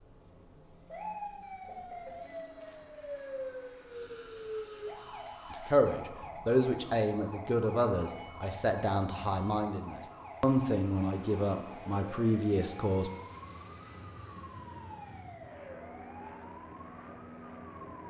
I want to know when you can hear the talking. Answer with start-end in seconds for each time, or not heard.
5.5-13.1.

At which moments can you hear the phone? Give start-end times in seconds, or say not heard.
not heard.